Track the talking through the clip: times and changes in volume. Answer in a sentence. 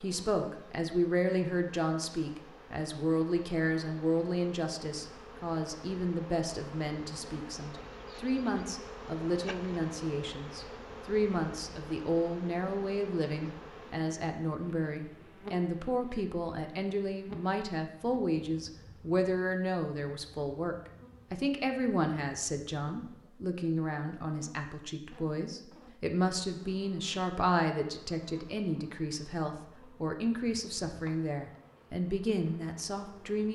The talking can be heard from 0.0 to 33.4 s, at a steady volume.